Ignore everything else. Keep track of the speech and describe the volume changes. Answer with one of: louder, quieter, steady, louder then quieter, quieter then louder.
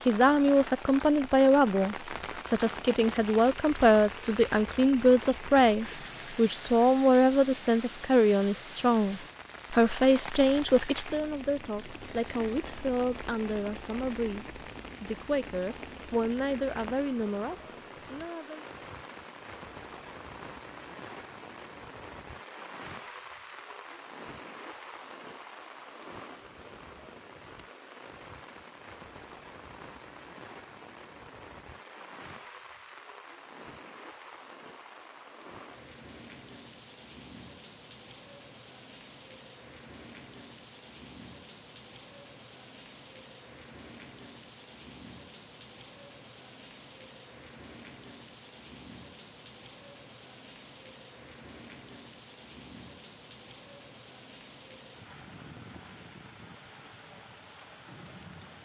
quieter.